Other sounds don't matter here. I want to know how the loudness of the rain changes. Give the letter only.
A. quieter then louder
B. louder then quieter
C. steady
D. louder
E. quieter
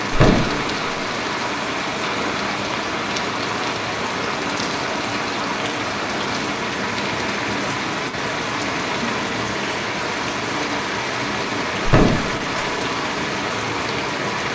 C.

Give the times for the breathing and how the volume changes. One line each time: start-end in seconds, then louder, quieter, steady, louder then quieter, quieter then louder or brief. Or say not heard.
not heard.